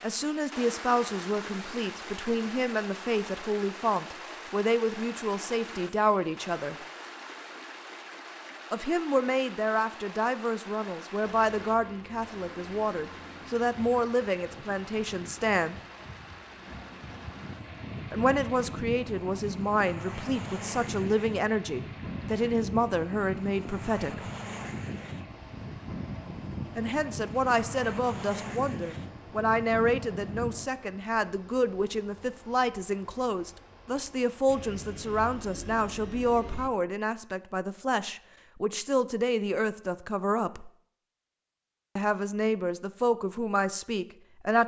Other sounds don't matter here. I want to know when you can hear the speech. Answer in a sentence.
You can hear the speech from 0.0 to 6.8 s, from 8.7 to 15.8 s, from 18.1 to 24.2 s, from 26.8 to 40.7 s and from 42.0 to 44.6 s.